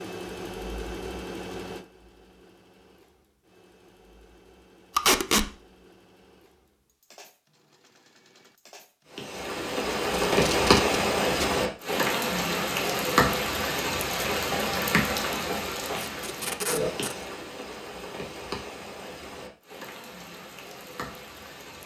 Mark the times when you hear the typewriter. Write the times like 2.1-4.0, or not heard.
not heard.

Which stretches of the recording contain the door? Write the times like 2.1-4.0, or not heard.
not heard.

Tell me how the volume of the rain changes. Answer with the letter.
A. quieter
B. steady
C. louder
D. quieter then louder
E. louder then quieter
A.